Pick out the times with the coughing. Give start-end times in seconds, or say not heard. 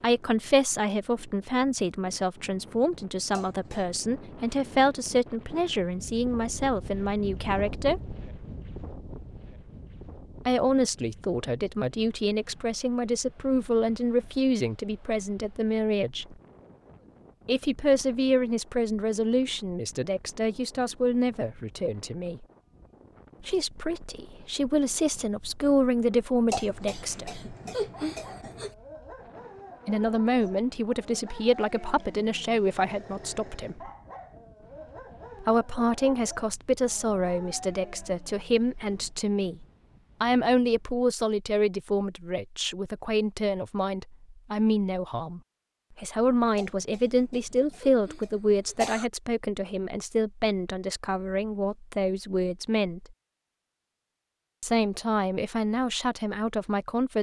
3.3-3.9, 26.5-28.8, 46.5-49.1.